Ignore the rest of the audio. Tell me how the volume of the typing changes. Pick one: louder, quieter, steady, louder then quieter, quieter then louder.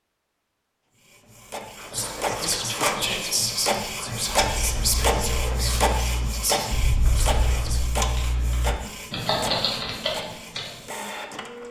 louder.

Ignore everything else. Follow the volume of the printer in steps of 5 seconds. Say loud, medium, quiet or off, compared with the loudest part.
loud, loud, medium.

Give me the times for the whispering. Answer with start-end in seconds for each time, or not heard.
1.8-7.8.